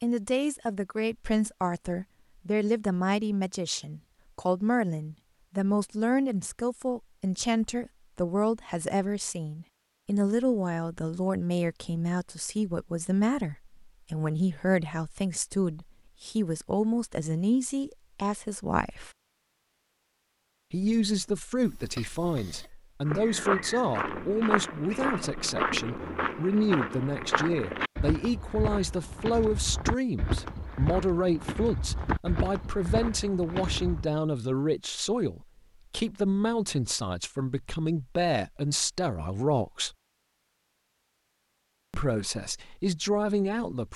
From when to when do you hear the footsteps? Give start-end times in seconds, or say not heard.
23.1-34.0.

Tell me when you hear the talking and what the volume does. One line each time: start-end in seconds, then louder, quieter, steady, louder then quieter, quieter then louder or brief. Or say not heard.
0.0-19.1 steady
20.7-39.9 steady
41.9-43.9 brief.